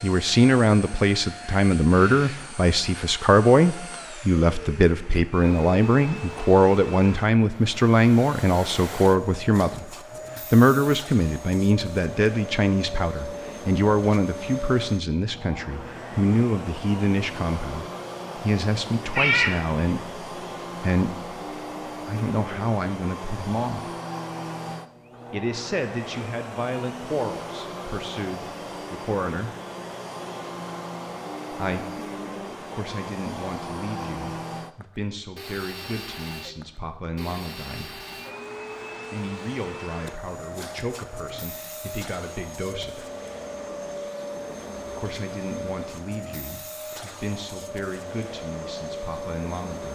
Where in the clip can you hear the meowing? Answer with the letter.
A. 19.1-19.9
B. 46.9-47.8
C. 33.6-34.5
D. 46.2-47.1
A.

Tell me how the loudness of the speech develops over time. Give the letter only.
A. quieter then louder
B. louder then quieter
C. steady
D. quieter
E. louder
D.